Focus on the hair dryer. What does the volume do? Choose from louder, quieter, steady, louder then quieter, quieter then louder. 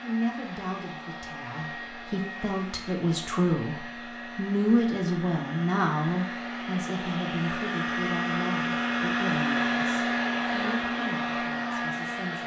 louder.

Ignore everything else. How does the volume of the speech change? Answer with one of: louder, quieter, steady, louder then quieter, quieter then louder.
louder then quieter.